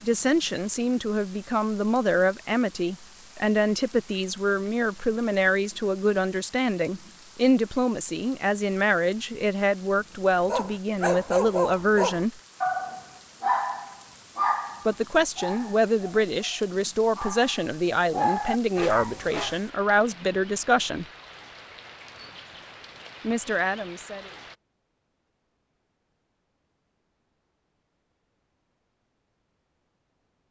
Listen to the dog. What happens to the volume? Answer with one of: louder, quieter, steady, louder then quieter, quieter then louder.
quieter then louder.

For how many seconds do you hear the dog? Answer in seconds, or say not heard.
9 s.